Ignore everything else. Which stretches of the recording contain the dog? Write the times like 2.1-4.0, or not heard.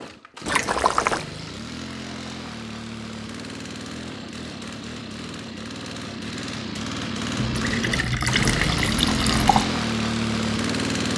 not heard.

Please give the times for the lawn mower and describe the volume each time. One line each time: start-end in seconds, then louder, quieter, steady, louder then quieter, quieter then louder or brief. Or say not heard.
0.0-11.1 louder.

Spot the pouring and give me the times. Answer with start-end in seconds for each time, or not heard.
0.5-1.2, 7.3-9.7.